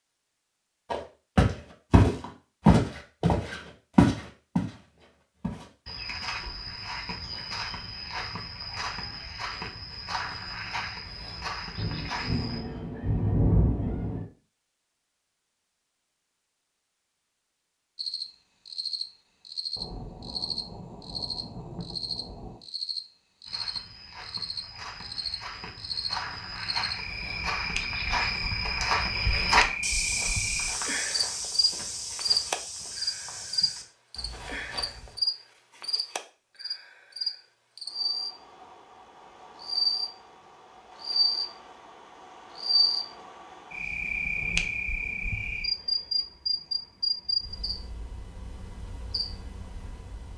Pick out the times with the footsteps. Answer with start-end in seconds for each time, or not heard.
0.9-12.6, 23.4-35.1.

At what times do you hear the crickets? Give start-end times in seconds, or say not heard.
17.9-50.3.